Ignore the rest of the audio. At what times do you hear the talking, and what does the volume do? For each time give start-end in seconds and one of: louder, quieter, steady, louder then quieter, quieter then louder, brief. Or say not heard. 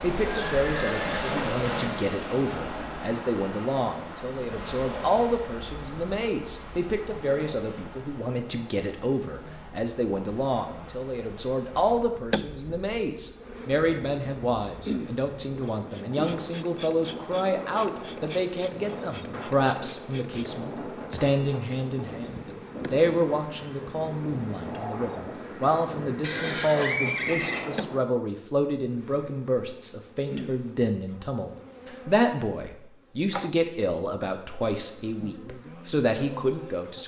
0.0-37.0 steady.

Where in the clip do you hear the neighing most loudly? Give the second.
27 s.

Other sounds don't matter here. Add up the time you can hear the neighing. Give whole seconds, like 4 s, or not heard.
3 s.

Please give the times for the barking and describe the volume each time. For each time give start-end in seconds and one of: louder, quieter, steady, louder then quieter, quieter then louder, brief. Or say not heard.
not heard.